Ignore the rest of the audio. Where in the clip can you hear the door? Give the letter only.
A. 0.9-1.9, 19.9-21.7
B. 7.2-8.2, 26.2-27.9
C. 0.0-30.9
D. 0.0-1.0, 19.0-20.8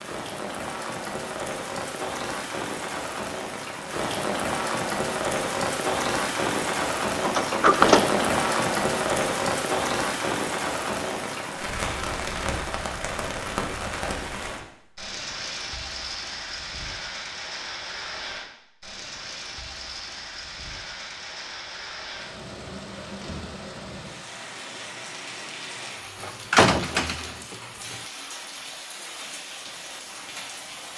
B.